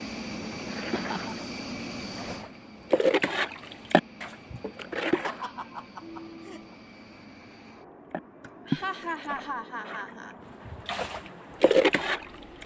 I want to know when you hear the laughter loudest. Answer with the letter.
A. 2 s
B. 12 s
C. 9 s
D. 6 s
C.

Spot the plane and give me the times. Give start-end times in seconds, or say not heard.
0.0-12.6.